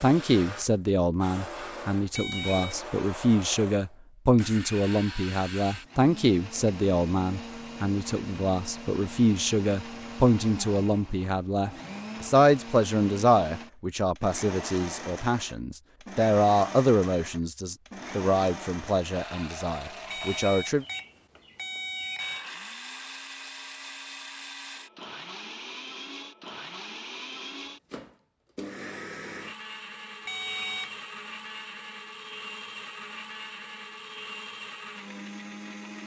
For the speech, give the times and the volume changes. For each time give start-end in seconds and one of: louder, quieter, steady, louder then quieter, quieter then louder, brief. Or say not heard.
0.0-20.9 steady.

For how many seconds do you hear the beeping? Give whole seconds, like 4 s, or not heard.
4 s.